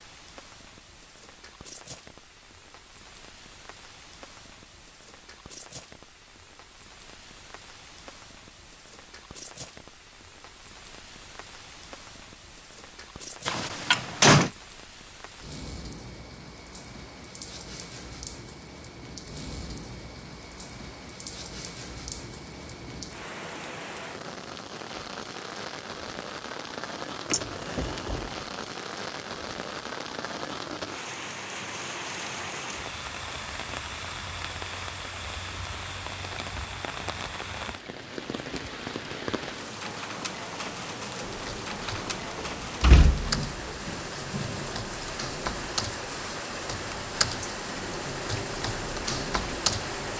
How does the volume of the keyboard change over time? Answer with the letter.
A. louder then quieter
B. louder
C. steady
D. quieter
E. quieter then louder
B.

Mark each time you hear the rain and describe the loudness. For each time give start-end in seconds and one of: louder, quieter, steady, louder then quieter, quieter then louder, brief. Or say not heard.
0.0-50.1 louder.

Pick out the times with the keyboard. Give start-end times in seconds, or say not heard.
41.2-50.1.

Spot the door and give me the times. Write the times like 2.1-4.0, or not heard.
13.4-14.5, 27.3-28.3, 42.4-43.8.